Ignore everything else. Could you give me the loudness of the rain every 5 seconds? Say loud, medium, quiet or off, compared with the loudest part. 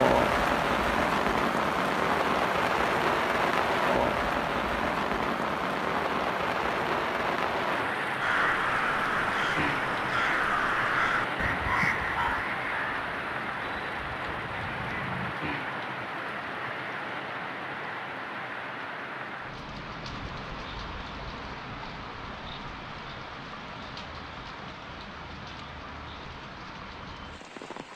loud, loud, medium, medium, quiet, quiet.